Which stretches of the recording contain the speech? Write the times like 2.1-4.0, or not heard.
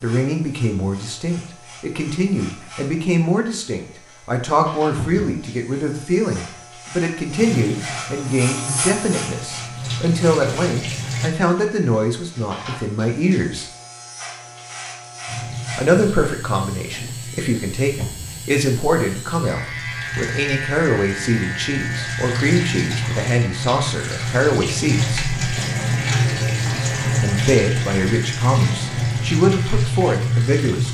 0.0-13.7, 15.8-25.2, 26.7-30.8.